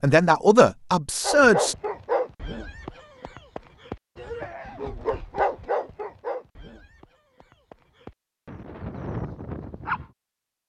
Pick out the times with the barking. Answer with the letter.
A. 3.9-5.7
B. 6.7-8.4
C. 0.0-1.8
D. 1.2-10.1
D.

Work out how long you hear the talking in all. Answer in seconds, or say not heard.
2 s.